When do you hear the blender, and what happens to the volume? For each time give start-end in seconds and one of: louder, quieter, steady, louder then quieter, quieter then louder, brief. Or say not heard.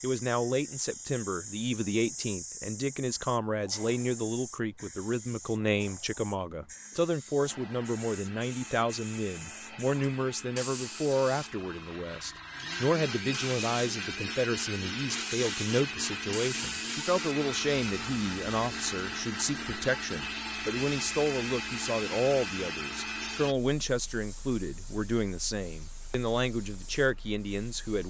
7.5-23.6 louder.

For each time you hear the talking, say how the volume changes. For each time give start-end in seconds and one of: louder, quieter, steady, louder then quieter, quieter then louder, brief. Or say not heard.
0.0-28.0 steady.